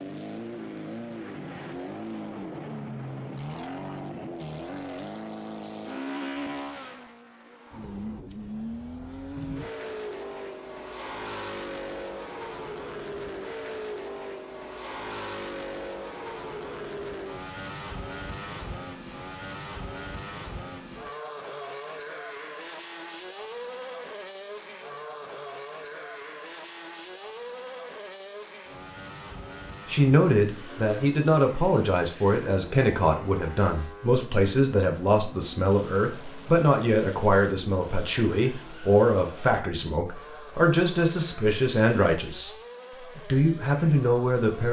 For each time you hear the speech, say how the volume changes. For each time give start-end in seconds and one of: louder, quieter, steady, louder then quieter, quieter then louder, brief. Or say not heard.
29.9-42.5 steady
43.1-44.6 brief.